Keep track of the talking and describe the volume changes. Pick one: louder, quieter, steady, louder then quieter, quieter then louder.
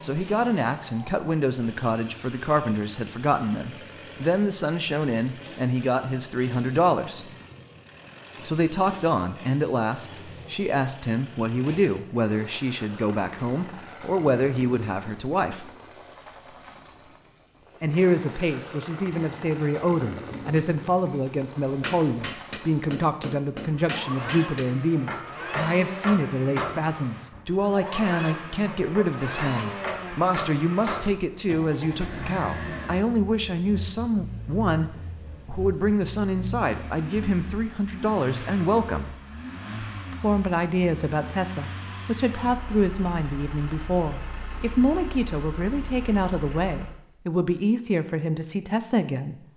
steady.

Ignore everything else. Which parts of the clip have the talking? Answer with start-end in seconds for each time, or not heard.
0.0-7.3, 8.4-15.7, 17.8-39.1, 40.1-49.5.